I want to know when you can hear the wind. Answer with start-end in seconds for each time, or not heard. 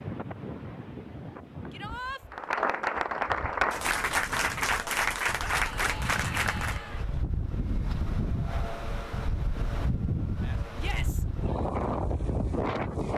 0.0-13.1.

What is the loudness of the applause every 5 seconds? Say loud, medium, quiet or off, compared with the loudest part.
loud, loud, off.